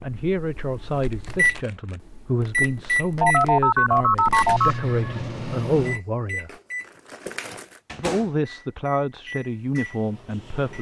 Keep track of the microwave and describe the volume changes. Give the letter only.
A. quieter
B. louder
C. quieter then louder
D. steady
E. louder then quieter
A.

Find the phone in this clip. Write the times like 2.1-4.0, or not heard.
3.2-5.2.